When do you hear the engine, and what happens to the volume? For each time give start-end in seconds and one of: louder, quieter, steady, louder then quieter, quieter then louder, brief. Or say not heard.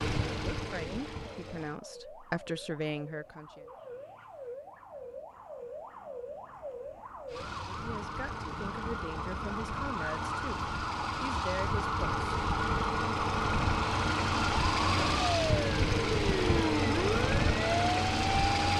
0.0-1.8 brief
7.2-18.7 louder.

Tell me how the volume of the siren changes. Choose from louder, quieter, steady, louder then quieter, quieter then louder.
louder.